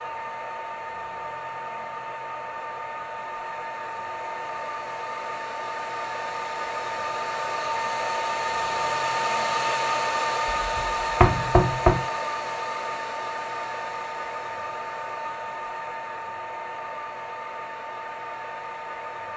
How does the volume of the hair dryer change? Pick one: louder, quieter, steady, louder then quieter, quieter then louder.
louder then quieter.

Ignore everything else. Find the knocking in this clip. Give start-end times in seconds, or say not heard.
10.6-12.1.